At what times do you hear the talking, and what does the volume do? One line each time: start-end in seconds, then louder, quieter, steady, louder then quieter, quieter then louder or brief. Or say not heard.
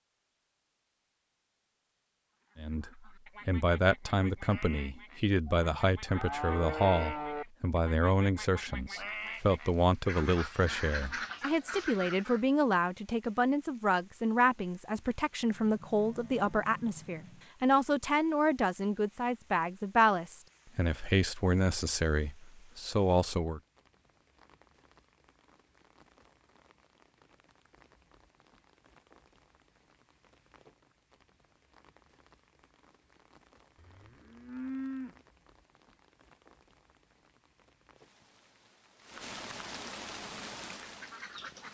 2.5-23.6 steady.